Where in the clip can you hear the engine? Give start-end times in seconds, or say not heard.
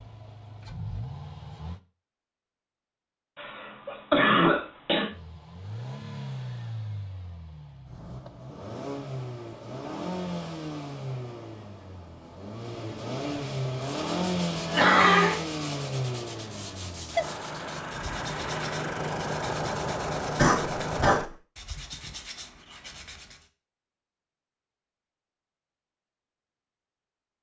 0.0-1.8, 5.1-21.3.